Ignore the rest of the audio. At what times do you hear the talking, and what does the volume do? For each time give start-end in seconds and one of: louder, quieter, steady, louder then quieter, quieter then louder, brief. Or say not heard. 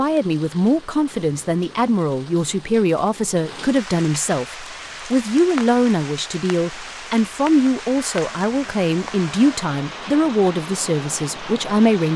0.0-12.1 steady.